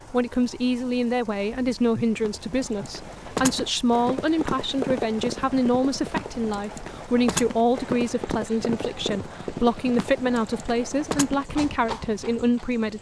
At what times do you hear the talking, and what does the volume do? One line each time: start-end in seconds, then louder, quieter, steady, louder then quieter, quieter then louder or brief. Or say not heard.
0.1-12.9 steady.